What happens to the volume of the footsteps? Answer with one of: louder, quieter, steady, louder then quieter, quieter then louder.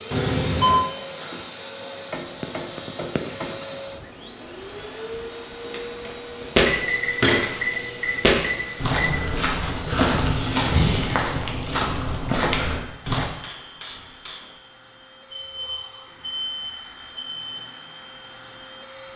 quieter.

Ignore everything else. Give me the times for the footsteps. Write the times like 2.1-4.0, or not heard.
5.7-13.2.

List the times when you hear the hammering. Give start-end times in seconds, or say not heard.
2.1-3.6, 9.4-10.7, 13.0-14.6.